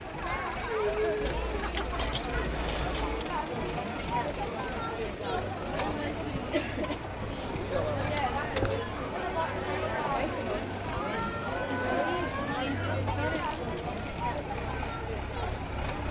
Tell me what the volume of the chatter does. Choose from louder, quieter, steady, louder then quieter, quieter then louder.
steady.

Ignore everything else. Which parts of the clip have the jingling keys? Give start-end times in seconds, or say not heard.
1.2-3.2, 7.2-8.8, 13.3-14.1.